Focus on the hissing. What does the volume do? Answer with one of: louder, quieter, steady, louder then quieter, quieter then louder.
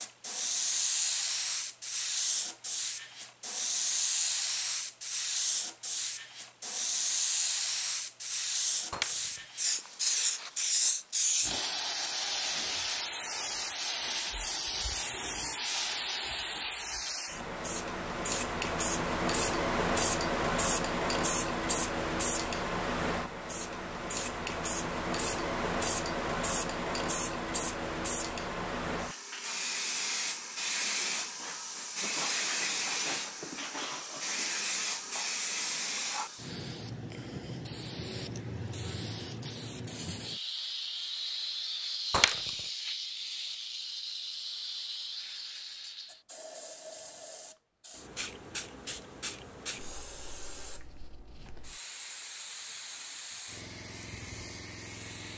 quieter.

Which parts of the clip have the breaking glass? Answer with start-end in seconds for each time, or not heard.
8.9-9.4, 42.1-42.6.